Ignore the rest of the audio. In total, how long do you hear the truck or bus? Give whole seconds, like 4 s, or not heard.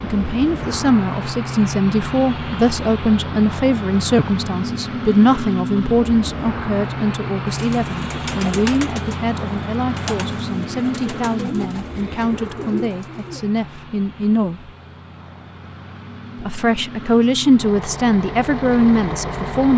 20 s.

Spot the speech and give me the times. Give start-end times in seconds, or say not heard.
0.0-14.7, 16.4-19.7.